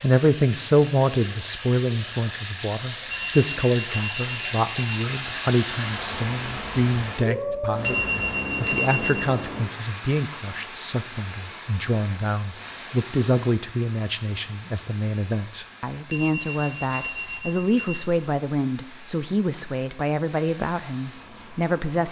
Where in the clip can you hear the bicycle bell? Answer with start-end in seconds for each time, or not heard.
3.1-5.0, 7.8-9.2, 16.1-18.0.